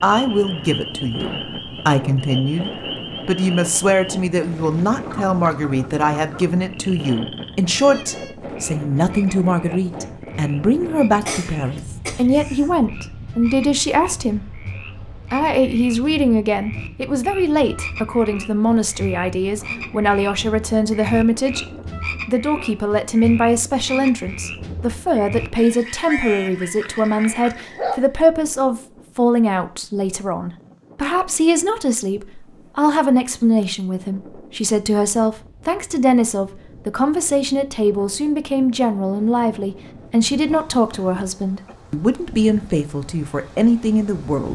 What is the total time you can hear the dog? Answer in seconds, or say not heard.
2 s.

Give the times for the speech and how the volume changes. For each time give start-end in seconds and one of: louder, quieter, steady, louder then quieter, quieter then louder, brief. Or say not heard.
0.0-14.6 steady
15.3-44.5 steady.